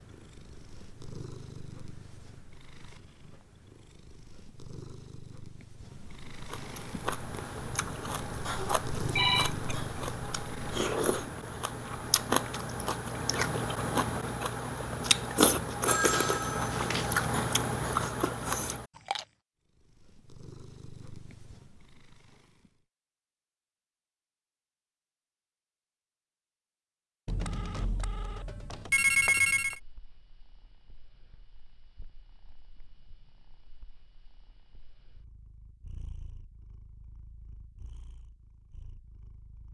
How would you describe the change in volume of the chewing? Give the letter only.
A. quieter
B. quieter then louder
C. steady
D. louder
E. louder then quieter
D.